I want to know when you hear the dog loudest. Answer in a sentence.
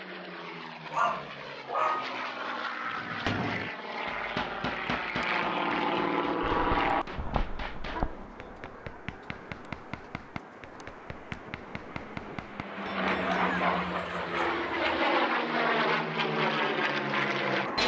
The volume of the dog peaks at 2 seconds.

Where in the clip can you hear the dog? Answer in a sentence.
You can hear the dog from 0.9 to 2.2 s, from 6.4 to 8.9 s and from 13.0 to 15.0 s.